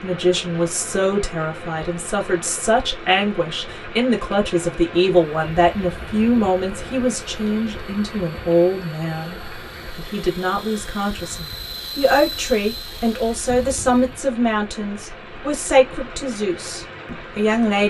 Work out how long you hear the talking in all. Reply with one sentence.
You can hear the talking for 18 seconds altogether.